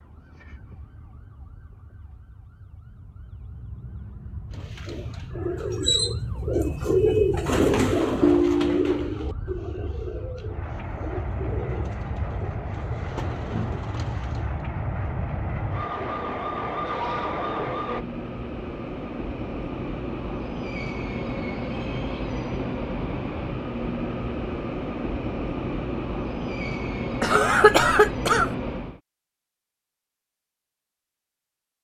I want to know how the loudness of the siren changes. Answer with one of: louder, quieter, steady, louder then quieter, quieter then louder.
louder.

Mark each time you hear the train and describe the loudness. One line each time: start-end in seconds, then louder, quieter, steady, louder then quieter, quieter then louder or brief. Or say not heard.
10.4-29.0 louder.